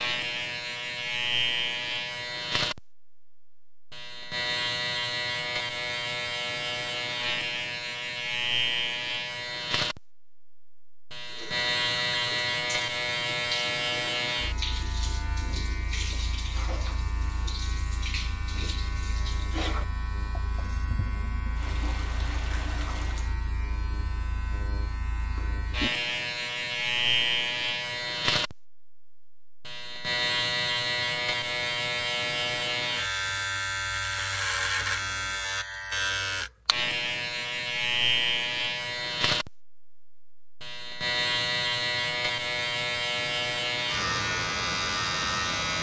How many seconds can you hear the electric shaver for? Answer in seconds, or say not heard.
46 s.